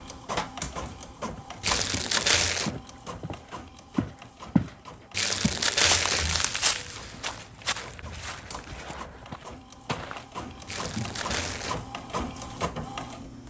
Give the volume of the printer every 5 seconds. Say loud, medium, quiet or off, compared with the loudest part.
loud, medium, loud.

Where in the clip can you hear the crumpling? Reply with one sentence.
The crumpling can be heard from 1.6 to 2.7 s, from 5.1 to 6.5 s and from 10.7 to 11.8 s.